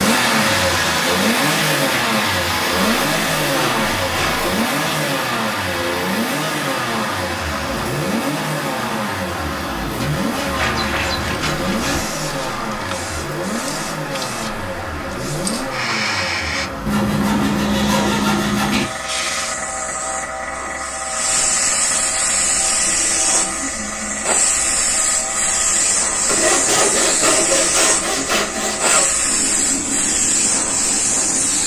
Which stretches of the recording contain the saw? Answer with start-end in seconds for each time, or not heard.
2.8-4.5, 9.9-12.0, 16.9-18.9, 26.2-29.1.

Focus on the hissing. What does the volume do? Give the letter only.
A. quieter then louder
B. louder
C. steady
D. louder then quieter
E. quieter
B.